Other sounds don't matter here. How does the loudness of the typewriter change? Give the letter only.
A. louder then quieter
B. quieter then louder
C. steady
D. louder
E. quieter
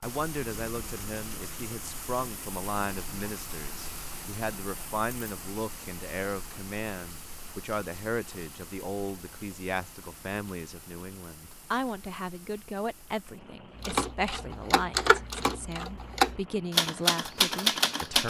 D.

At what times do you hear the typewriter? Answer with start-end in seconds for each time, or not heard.
13.8-18.2.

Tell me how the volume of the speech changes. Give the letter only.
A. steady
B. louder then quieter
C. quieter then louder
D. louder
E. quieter
A.